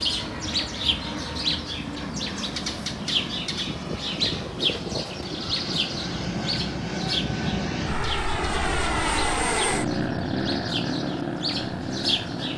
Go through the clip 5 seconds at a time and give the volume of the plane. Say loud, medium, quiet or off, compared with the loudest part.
medium, loud, loud.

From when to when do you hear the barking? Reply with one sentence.
The barking can't be heard in this clip.